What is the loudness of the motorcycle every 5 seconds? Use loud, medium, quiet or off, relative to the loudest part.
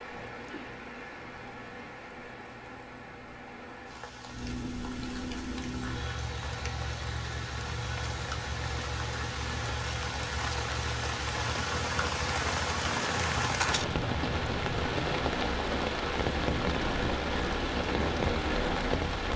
medium, loud, loud, loud.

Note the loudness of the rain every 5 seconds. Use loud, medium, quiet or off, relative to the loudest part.
quiet, medium, loud, loud.